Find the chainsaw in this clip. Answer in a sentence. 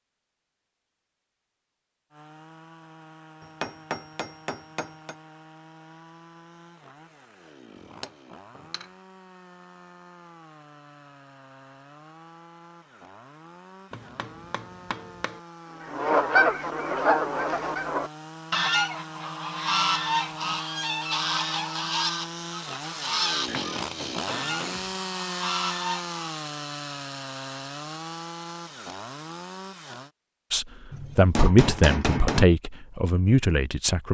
The chainsaw can be heard from 2.1 to 30.1 s.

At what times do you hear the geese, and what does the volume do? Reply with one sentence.
The geese can be heard from 15.8 to 26.2 s, getting quieter.